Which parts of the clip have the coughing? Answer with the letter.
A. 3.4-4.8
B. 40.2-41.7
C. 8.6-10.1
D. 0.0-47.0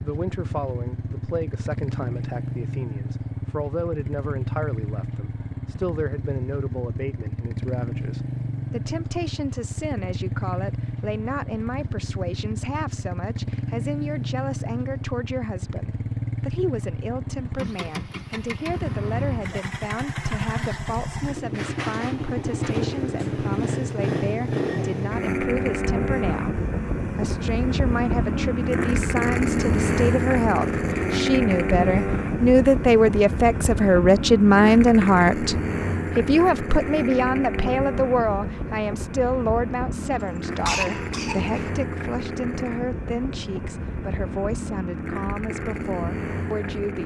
B.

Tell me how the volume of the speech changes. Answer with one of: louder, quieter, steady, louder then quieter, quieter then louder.
louder then quieter.